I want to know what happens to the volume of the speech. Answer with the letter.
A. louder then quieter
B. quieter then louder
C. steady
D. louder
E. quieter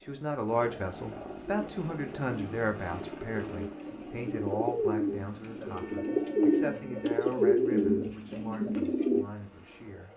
E.